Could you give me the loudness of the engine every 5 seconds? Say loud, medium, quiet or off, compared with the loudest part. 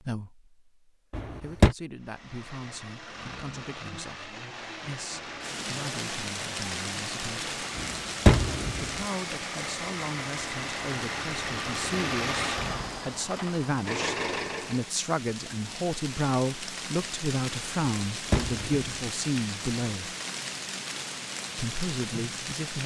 medium, medium, loud, off, off.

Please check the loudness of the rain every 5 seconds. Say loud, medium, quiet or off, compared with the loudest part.
off, loud, medium, loud, loud.